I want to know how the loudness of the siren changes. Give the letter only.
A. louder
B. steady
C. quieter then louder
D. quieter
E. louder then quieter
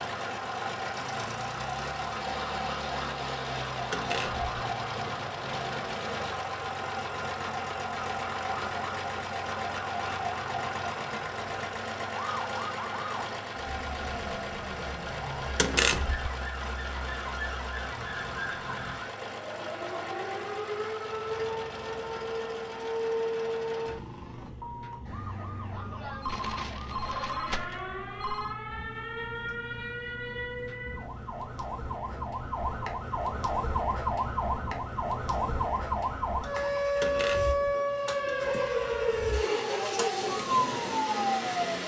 A.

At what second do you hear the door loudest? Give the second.
16 s.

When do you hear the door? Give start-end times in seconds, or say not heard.
3.9-4.5, 15.6-16.3, 37.0-37.6.